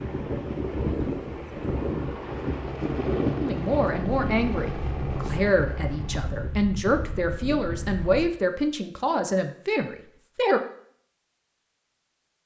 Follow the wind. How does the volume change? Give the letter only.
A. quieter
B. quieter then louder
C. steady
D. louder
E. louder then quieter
A.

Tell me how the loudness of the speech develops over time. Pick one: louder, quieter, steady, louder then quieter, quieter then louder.
steady.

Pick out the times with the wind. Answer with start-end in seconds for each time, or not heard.
0.0-8.3.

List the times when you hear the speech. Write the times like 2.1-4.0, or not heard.
3.4-10.6.